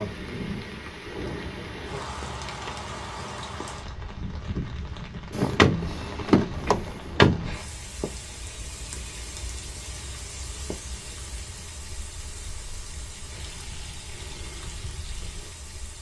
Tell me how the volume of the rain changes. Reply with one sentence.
The volume of the rain goes down.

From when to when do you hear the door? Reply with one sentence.
The door can be heard from 5.3 to 7.5 s.